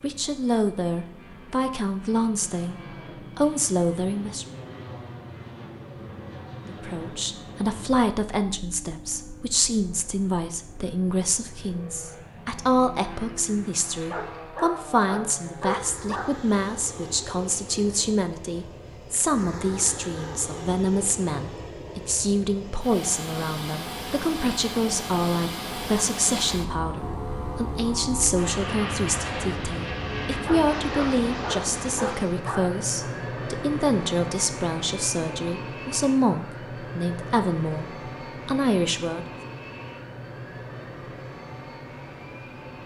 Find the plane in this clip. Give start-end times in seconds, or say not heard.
0.0-42.8.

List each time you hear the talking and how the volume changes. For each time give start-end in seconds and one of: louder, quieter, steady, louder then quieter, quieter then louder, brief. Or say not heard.
0.0-4.5 quieter then louder
6.7-39.2 steady.